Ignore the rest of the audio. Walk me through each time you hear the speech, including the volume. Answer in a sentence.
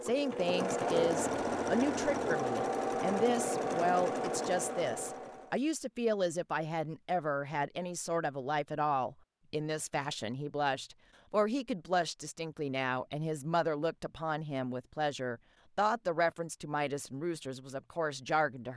The speech can be heard from 0.0 to 18.7 s, at a steady volume.